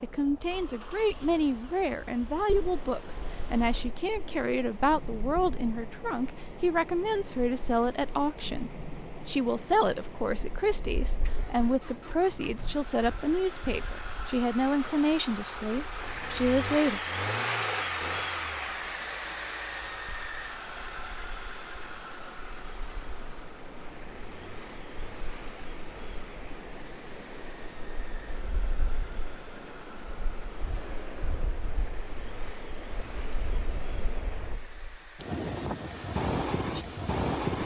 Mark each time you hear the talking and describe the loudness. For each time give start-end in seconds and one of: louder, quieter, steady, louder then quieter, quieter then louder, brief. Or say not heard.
0.0-17.0 steady.